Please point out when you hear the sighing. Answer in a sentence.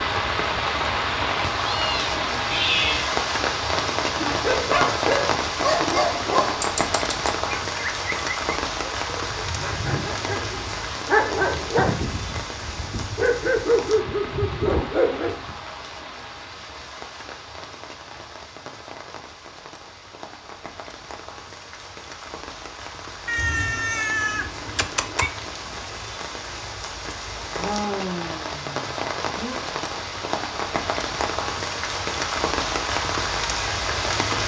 You can hear the sighing from 11.8 to 12.4 s and from 27.6 to 29.6 s.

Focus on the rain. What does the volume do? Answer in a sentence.
The volume of the rain goes down, then up.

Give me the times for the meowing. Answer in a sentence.
The meowing can be heard from 1.6 to 3.1 s and from 23.2 to 25.3 s.